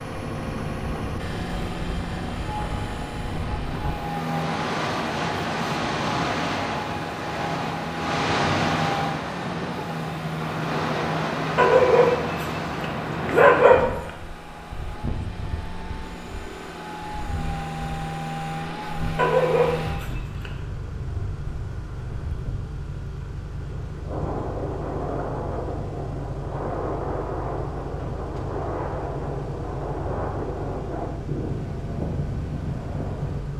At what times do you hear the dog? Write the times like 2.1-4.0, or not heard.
11.6-14.1, 19.1-20.5.